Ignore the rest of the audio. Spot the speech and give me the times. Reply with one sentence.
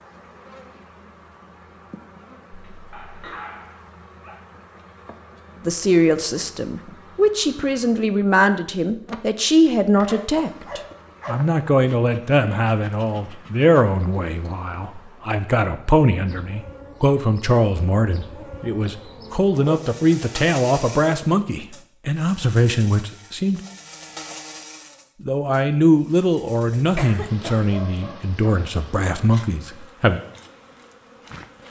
The speech can be heard from 5.7 to 23.6 s and from 25.2 to 30.2 s.